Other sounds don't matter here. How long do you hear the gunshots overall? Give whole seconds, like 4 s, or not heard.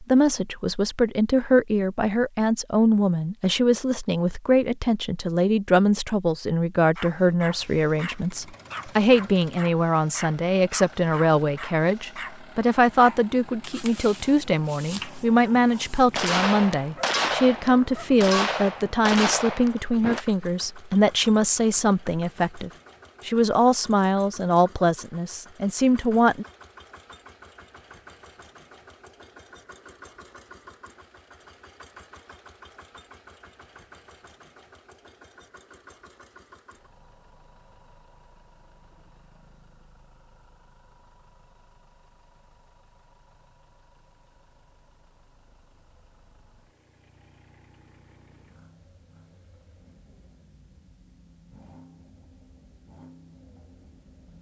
4 s.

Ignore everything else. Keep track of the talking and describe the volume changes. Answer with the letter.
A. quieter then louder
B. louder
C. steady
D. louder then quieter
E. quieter
C.